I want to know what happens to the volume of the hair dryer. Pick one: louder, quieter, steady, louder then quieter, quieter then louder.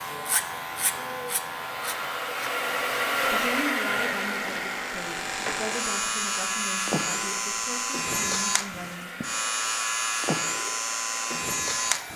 louder then quieter.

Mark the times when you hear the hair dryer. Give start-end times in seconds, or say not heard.
0.0-12.1.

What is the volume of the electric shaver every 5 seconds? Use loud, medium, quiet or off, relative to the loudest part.
medium, loud, loud.